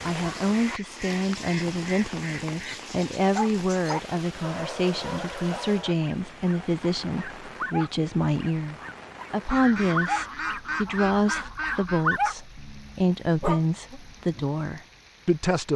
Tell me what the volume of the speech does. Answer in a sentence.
The volume of the speech stays about the same.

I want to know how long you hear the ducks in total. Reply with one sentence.
You can hear the ducks for 5 seconds altogether.